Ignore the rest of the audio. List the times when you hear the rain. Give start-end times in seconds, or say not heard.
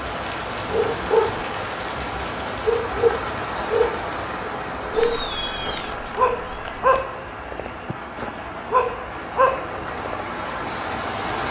0.0-11.4.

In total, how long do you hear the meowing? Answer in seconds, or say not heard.
2 s.